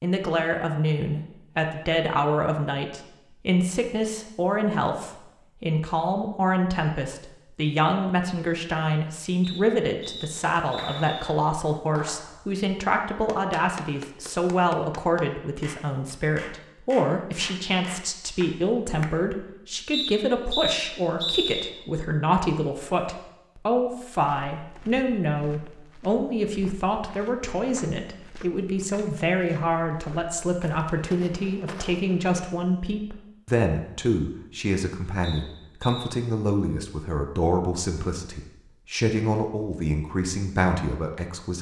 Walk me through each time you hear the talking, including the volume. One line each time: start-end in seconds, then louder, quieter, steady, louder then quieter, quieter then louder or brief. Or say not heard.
0.0-41.5 steady.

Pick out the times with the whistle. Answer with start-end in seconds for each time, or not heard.
9.4-11.4, 19.9-21.7, 35.2-36.1.